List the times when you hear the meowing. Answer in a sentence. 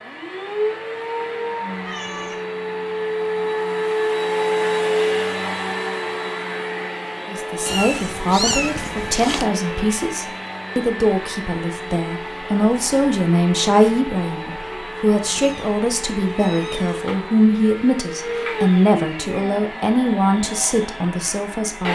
You can hear the meowing from 1.8 to 2.5 s, from 7.7 to 9.4 s and from 15.2 to 17.1 s.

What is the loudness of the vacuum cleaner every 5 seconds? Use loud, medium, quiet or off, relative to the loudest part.
loud, loud, medium, medium, medium.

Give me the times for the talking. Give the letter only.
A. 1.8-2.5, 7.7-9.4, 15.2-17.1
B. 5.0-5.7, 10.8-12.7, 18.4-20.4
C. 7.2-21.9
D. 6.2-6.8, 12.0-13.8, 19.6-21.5
C.